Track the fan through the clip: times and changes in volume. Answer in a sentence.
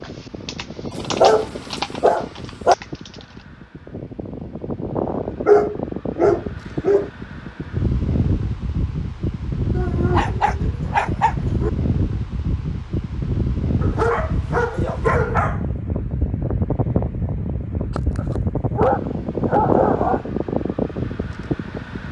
The fan can be heard from 0.0 to 22.0 s, getting louder.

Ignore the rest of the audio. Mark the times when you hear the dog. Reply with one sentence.
You can hear the dog from 0.9 to 2.8 s, from 5.5 to 7.1 s, from 9.8 to 11.7 s, from 13.8 to 15.7 s and from 17.9 to 20.2 s.